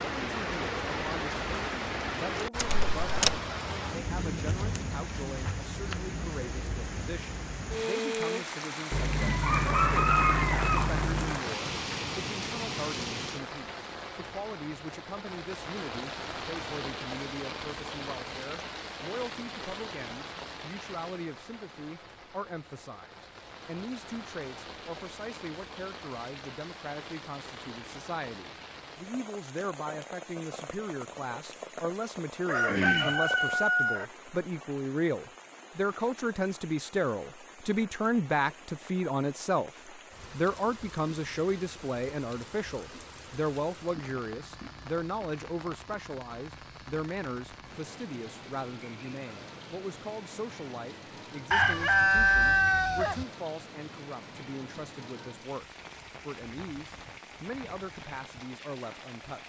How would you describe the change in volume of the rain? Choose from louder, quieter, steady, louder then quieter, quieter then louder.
quieter.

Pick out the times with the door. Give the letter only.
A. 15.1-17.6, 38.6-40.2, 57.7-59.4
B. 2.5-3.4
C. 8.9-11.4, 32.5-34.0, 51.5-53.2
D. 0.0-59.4
B.